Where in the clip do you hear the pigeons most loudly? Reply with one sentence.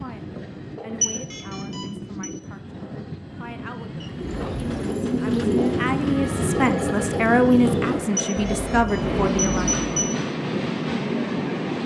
The loudest moment of the pigeons is at 5 seconds.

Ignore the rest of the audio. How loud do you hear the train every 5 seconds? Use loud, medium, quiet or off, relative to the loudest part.
medium, loud, loud.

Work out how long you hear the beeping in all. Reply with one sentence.
The beeping can be heard for 3 seconds in total.